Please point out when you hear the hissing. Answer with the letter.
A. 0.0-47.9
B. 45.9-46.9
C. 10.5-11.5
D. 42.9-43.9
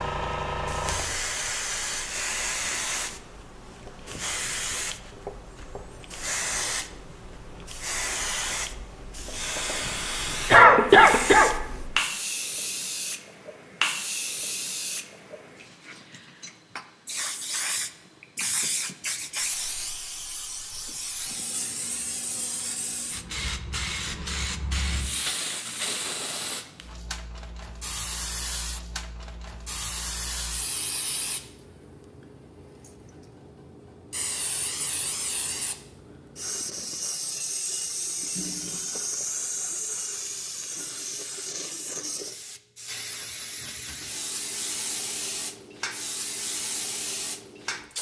A.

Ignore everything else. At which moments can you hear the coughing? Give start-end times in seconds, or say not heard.
10.5-11.5.